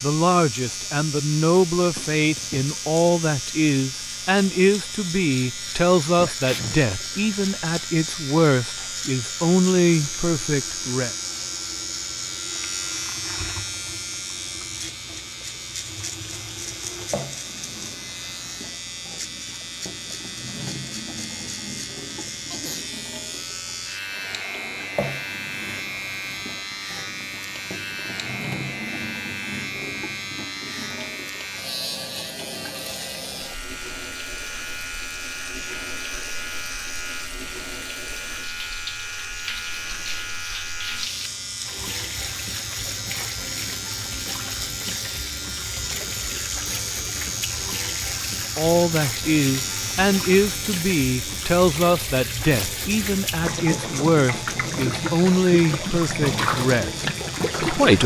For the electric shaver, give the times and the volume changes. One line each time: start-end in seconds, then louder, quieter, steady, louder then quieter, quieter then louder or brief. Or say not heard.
0.0-58.0 steady.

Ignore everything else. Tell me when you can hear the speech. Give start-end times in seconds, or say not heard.
0.0-11.1, 48.5-58.0.